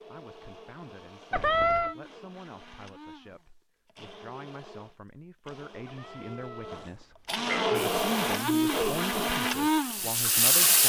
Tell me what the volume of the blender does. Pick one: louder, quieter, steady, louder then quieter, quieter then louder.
louder.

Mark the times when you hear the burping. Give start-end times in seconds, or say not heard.
1.3-1.9, 5.8-6.8, 7.5-7.9.